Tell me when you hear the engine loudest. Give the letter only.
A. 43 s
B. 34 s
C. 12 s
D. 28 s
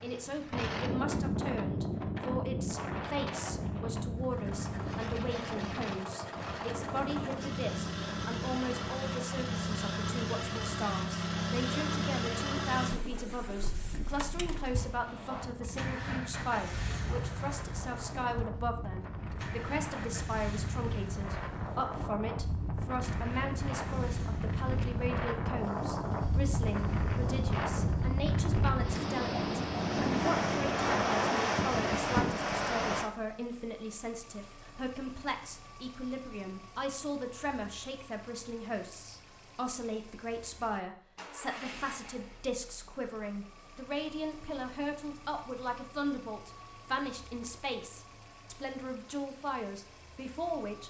C.